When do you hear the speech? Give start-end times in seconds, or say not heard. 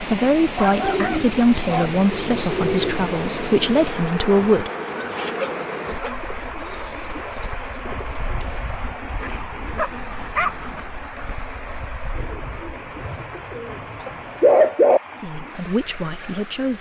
0.0-4.7, 15.2-16.7.